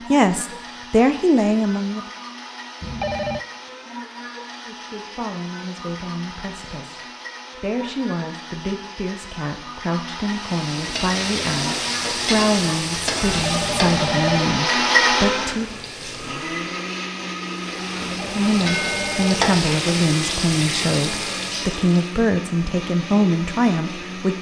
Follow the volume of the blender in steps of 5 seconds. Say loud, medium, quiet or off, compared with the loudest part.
medium, medium, loud, loud, medium.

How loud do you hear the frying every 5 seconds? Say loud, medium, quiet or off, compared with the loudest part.
off, off, loud, loud, loud.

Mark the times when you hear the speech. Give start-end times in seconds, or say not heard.
0.1-2.0, 4.5-15.8, 18.2-24.3.